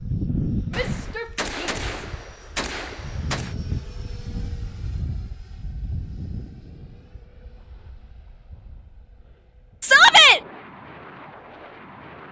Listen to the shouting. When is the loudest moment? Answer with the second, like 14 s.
10 s.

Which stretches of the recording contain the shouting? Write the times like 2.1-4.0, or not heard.
0.8-2.0, 9.8-10.4.